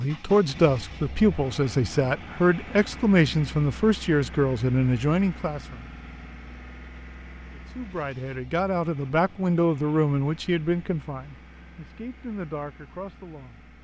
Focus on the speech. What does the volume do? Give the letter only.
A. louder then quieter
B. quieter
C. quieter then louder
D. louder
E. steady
B.